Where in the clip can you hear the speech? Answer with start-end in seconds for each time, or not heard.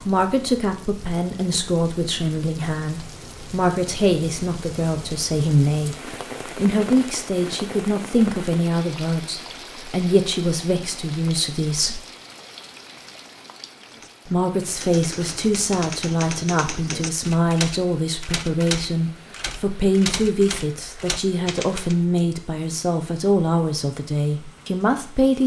0.0-12.0, 14.2-25.4.